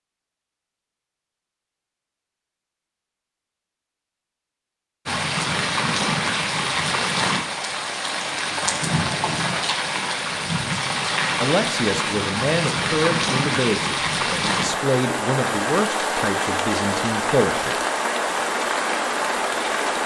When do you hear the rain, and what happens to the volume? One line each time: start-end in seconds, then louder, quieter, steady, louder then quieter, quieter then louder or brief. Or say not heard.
5.0-20.0 steady.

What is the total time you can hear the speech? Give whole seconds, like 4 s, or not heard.
6 s.